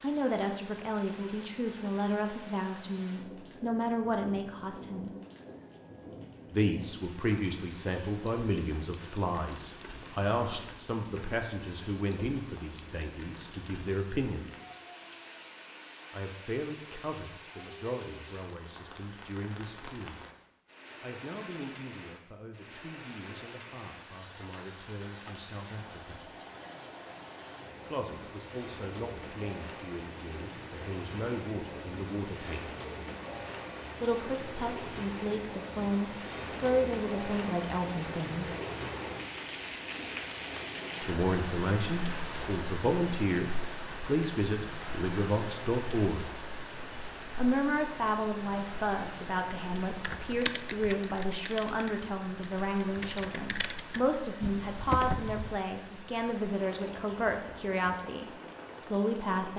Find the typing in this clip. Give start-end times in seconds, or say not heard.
50.0-55.6.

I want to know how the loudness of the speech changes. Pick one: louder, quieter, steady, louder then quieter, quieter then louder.
quieter then louder.